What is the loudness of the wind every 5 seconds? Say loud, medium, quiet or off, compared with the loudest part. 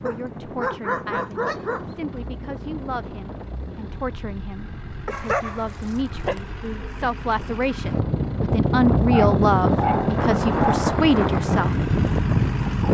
quiet, loud, loud.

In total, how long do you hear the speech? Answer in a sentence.
You can hear the speech for 12 seconds altogether.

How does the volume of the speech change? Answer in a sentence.
The loudness of the speech goes up.